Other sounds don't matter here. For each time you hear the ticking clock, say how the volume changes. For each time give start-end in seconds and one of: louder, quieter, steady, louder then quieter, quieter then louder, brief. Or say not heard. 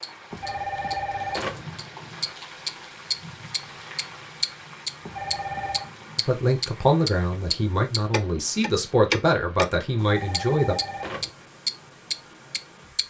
0.0-9.7 louder
10.3-13.0 brief.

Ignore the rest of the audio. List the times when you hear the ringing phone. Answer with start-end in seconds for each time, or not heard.
0.3-1.6, 5.0-5.9, 10.0-11.3.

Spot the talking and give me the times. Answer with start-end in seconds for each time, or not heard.
6.2-10.8.